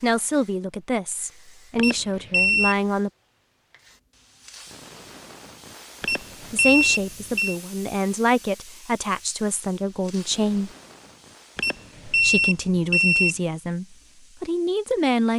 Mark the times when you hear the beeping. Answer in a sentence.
You can hear the beeping from 1.8 to 2.8 s, from 6.0 to 7.5 s and from 11.6 to 13.3 s.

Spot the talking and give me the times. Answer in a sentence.
The talking can be heard from 0.0 to 3.1 s, from 6.5 to 10.7 s and from 12.1 to 15.3 s.